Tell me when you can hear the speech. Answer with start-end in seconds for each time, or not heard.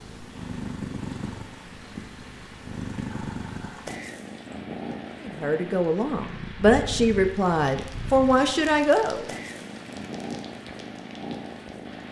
5.2-9.2.